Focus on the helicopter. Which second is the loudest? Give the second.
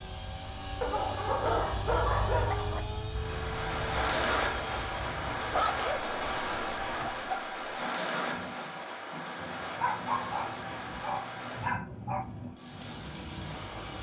2 s.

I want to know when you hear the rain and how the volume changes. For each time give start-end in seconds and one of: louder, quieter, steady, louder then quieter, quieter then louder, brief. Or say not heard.
3.1-13.9 quieter.